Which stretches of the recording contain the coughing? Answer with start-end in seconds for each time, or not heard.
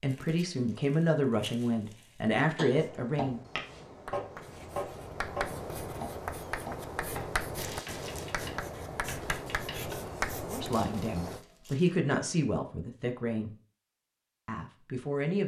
not heard.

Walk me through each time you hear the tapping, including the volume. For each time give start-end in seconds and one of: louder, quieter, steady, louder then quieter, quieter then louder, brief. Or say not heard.
2.5-9.9 quieter.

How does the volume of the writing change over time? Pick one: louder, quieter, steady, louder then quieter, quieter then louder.
louder.